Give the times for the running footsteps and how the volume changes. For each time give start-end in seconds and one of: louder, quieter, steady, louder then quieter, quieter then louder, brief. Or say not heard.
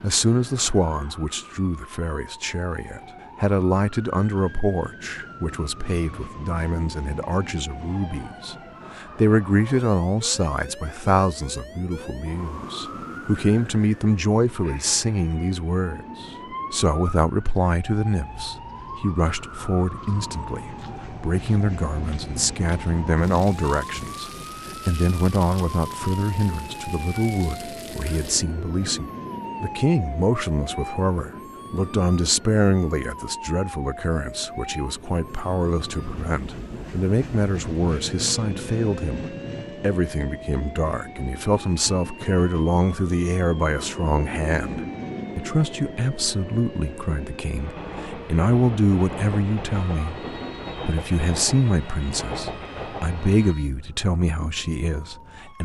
not heard.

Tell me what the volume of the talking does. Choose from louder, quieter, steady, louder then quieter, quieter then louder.
steady.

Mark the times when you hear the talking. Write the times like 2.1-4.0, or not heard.
0.0-50.2, 50.9-55.5.